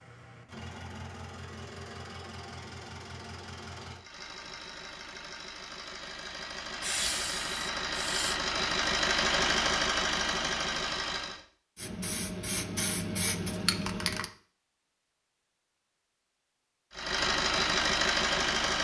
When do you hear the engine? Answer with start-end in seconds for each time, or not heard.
0.0-11.4, 16.9-18.7.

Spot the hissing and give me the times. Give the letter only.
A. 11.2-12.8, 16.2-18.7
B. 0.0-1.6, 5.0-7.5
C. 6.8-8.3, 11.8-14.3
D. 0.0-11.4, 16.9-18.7
C.